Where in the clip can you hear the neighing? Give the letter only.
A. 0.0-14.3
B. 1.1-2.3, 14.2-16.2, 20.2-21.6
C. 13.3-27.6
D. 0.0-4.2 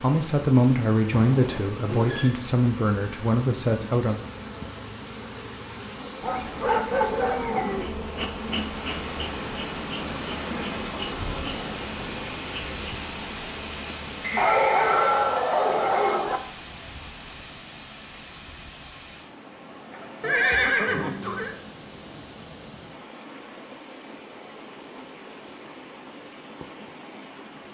B.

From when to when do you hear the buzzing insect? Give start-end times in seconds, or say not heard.
0.0-14.3.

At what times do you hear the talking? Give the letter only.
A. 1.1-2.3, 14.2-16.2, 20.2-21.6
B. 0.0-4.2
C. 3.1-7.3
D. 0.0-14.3
B.